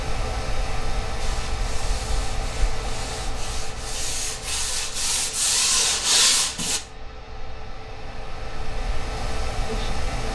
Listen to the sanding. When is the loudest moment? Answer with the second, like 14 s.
6 s.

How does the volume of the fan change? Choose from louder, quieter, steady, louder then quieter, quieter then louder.
quieter then louder.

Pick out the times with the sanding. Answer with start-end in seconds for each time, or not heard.
1.2-6.8.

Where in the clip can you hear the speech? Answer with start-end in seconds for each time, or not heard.
9.7-10.2.